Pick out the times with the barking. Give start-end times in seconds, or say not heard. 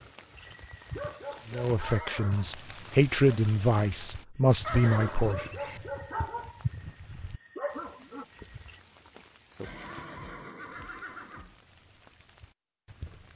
0.3-8.8.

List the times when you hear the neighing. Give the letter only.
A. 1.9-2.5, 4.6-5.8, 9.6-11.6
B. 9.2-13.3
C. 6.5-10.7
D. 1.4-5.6
A.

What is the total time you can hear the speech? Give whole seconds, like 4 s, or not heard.
4 s.